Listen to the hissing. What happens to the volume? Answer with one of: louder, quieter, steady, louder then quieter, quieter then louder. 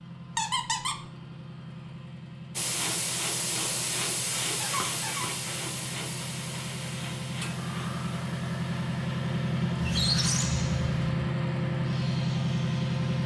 quieter.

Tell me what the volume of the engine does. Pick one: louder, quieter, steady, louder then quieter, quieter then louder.
louder.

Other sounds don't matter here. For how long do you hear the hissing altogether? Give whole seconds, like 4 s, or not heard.
11 s.